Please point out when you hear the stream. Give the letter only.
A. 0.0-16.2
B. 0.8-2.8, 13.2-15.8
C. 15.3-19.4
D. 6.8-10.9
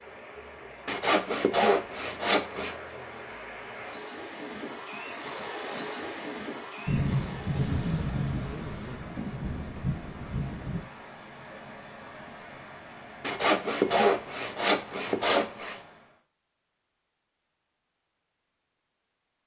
A.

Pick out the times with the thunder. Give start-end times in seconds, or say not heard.
6.8-10.9.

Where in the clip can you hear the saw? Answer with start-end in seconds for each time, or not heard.
0.8-2.8, 13.2-15.8.